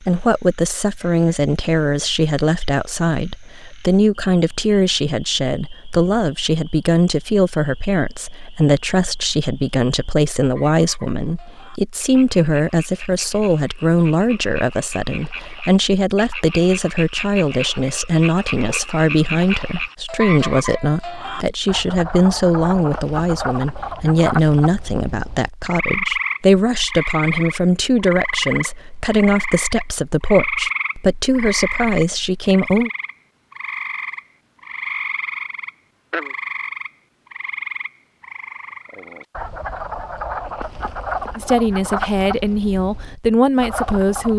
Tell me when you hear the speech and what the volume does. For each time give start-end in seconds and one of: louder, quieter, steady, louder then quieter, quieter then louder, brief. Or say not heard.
0.0-32.9 steady
41.4-44.3 brief.